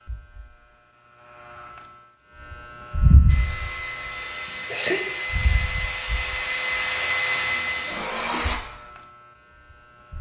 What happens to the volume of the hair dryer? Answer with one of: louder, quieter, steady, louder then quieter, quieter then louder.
louder.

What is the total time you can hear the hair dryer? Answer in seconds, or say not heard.
5 s.